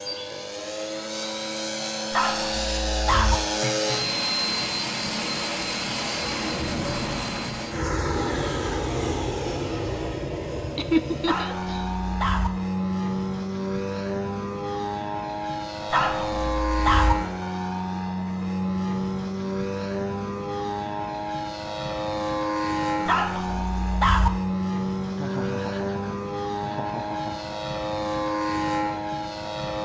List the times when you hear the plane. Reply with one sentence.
You can hear the plane from 0.0 to 29.7 s.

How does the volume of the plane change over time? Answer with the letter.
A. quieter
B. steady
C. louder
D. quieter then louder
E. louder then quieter
B.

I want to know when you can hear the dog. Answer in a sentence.
You can hear the dog from 2.1 to 3.4 s, from 11.2 to 12.5 s, from 15.9 to 17.1 s and from 23.1 to 24.3 s.